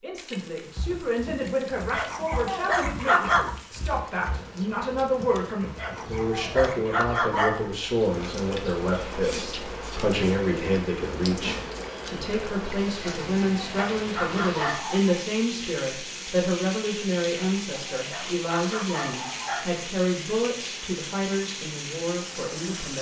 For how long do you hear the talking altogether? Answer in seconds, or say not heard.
23 s.